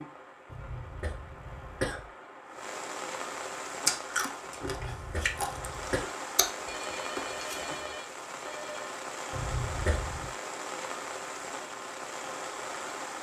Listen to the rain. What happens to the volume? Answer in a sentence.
The loudness of the rain goes up.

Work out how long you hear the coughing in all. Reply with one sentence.
You can hear the coughing for 4 seconds altogether.